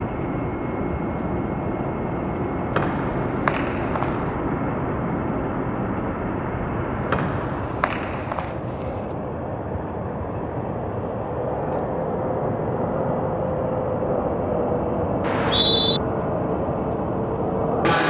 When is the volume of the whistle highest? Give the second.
16 s.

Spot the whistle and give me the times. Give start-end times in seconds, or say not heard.
2.8-4.2, 7.1-8.5, 15.2-16.0.